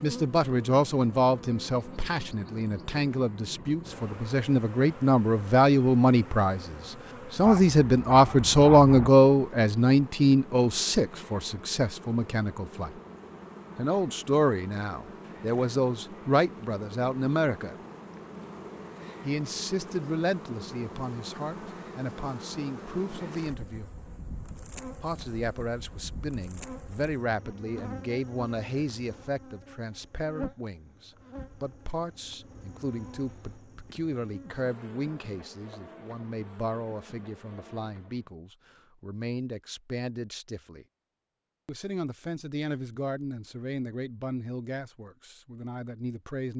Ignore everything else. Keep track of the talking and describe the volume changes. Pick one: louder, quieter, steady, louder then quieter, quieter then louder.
quieter.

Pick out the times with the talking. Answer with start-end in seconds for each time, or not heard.
0.0-12.9, 13.8-17.8, 19.2-23.9, 25.0-40.9, 41.6-46.5.